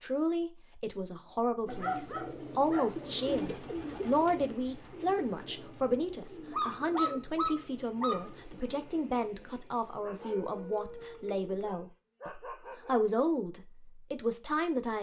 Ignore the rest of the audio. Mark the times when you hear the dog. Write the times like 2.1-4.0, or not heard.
1.6-3.0, 6.5-8.3, 10.0-13.0.